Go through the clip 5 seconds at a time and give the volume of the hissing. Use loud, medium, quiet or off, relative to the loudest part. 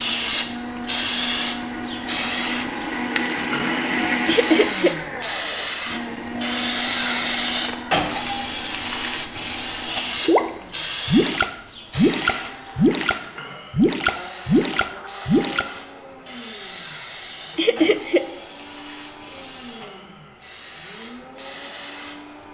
loud, loud, medium, quiet, quiet.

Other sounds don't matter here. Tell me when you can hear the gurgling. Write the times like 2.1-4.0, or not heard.
10.2-15.7.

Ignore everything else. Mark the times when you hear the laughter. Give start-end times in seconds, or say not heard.
4.2-5.0, 17.6-18.2.